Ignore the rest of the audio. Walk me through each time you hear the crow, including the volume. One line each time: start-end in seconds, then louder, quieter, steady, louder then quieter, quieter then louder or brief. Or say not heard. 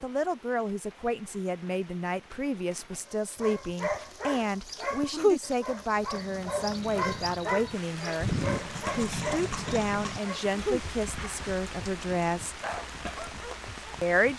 not heard.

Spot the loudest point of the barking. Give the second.
5 s.